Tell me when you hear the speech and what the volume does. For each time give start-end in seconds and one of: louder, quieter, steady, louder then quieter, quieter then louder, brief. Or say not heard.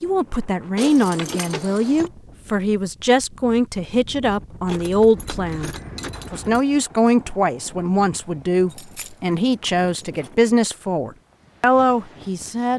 0.0-12.7 steady.